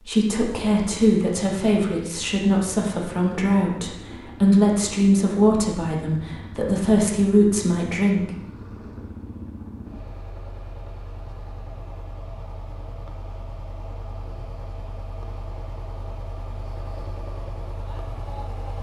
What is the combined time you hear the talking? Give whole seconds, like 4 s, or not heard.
8 s.